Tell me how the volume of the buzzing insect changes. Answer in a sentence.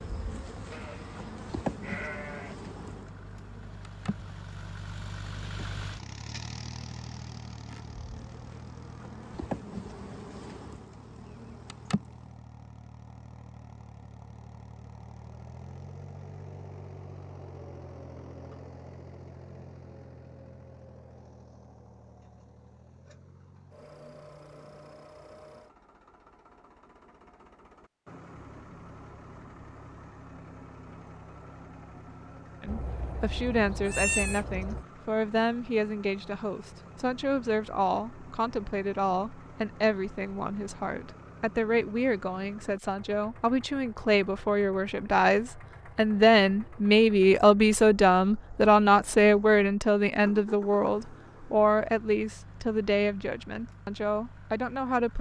The loudness of the buzzing insect goes down, then up.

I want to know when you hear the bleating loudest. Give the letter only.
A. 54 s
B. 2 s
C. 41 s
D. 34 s
D.